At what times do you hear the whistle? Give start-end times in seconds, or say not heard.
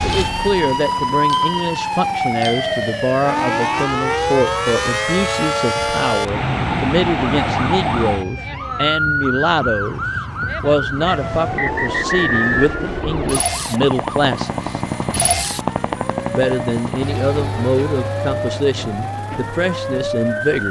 11.1-12.7.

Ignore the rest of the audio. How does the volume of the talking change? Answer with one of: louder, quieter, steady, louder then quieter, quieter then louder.
steady.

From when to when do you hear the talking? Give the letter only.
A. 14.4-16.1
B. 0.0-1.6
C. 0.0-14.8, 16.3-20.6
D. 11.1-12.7
C.